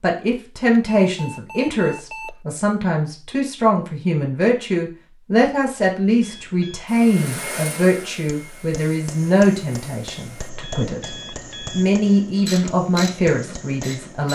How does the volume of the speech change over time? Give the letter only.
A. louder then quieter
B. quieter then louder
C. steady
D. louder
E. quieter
C.